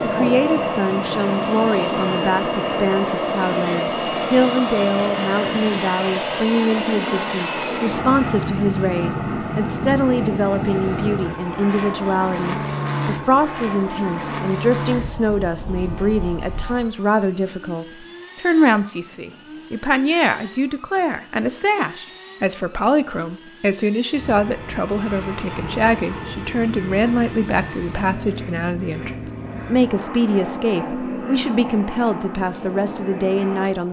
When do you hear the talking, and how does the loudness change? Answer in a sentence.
The talking can be heard from 0.0 to 33.8 s, at a steady volume.